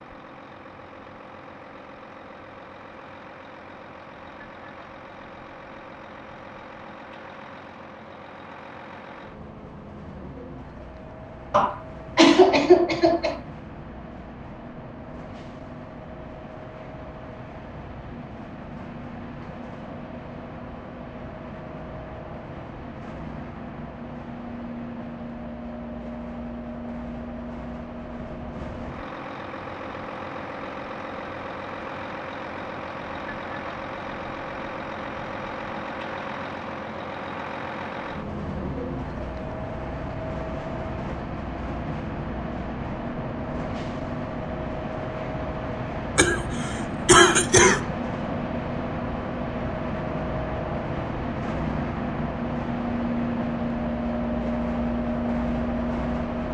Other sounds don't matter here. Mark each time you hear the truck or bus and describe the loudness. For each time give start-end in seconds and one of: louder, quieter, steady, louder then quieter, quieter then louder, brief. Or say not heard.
0.0-56.4 louder.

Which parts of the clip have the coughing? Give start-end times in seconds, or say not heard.
11.5-13.4, 46.1-47.8.